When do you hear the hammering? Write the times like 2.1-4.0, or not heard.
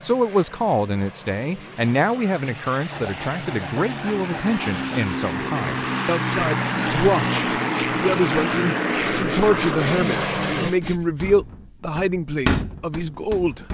10.8-13.6.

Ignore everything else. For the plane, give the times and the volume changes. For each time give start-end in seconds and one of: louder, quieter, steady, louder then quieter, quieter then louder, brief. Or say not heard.
0.0-10.7 louder.